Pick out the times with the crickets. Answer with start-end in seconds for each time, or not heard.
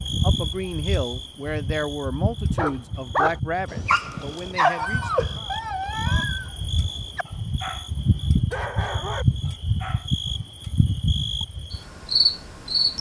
0.0-12.9.